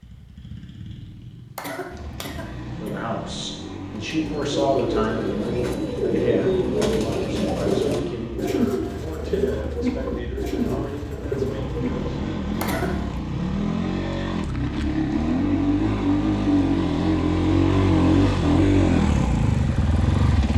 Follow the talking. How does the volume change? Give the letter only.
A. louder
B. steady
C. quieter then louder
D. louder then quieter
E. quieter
E.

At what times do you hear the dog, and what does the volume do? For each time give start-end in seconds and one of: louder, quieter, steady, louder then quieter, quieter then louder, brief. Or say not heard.
not heard.